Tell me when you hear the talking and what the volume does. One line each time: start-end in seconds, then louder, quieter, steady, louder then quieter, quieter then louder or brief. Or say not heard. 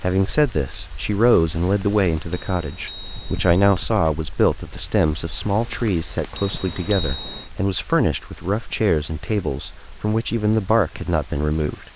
0.0-11.9 steady.